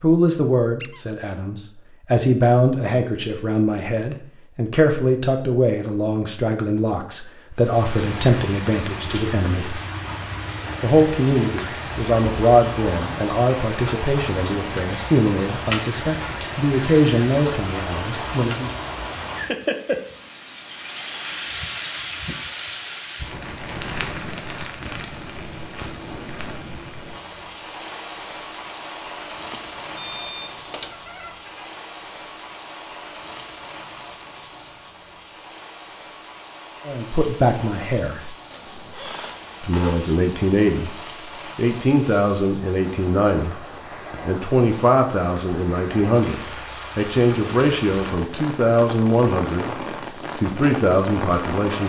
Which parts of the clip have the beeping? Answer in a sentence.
You can hear the beeping from 29.5 to 30.9 s.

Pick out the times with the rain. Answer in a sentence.
You can hear the rain from 7.5 to 51.8 s.